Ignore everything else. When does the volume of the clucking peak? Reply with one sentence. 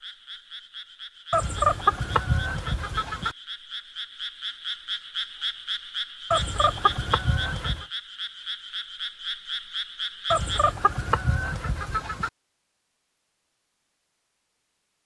The loudest moment of the clucking is at 2 seconds.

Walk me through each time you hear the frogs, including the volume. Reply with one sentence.
You can hear the frogs from 0.0 to 10.8 s, getting louder.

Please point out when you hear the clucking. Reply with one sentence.
The clucking can be heard from 1.3 to 3.4 s, from 6.3 to 7.8 s and from 10.3 to 12.3 s.